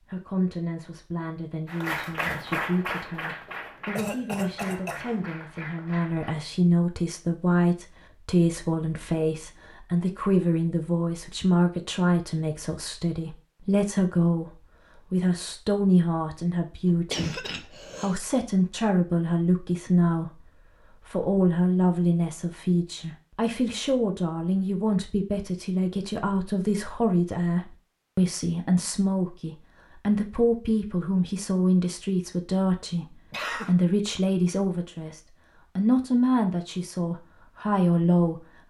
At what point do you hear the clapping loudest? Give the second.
2 s.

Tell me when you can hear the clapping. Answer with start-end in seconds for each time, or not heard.
1.6-6.3.